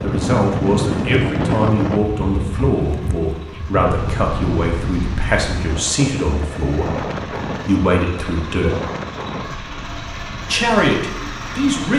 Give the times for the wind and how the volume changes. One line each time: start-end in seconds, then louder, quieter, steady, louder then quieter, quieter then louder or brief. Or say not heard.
0.0-11.7 quieter.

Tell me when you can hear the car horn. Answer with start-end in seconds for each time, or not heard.
not heard.